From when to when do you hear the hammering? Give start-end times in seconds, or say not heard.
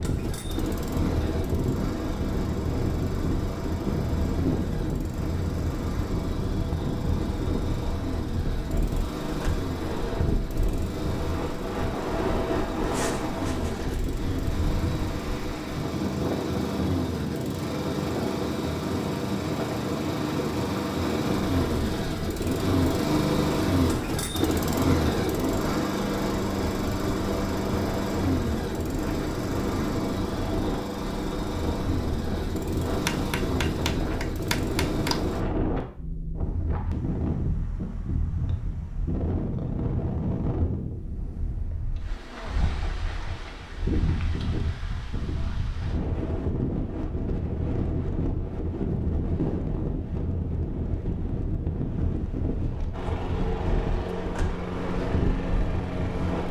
32.9-35.2.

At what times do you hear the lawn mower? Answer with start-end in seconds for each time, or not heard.
0.0-35.5, 52.9-56.4.